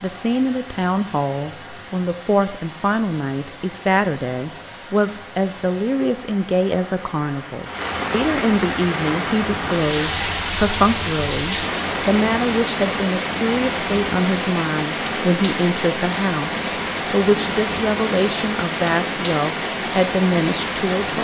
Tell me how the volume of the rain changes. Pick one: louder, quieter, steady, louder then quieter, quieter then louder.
louder.